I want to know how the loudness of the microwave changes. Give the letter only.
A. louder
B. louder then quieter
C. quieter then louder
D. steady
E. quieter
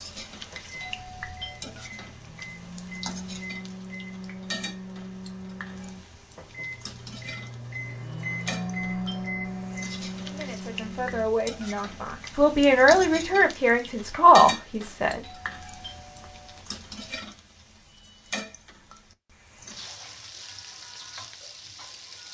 A.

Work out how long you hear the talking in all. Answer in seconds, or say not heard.
5 s.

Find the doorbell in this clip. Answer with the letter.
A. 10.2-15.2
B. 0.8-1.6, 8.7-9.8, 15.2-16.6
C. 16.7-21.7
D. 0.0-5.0
B.